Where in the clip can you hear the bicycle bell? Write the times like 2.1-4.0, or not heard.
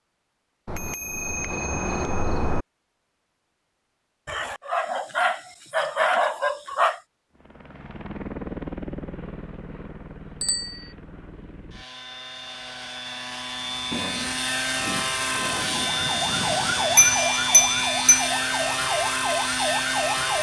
0.7-2.6, 10.4-10.9, 16.9-18.3.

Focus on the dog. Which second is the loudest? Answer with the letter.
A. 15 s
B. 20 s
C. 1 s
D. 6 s
D.